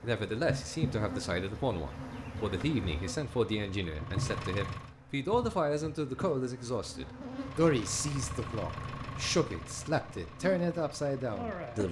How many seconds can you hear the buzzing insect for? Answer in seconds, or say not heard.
12 s.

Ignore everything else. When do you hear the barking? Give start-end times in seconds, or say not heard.
not heard.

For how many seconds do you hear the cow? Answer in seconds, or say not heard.
not heard.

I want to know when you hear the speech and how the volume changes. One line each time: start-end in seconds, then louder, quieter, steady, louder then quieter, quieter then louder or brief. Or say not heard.
0.0-11.8 steady.